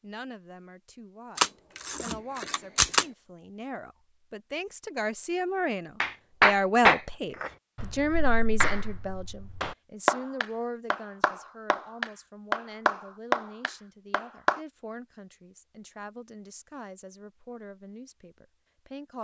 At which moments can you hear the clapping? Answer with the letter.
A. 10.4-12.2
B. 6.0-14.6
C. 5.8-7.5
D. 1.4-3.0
B.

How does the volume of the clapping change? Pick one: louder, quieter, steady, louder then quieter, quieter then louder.
quieter then louder.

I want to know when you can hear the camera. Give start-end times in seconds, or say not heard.
1.4-3.0.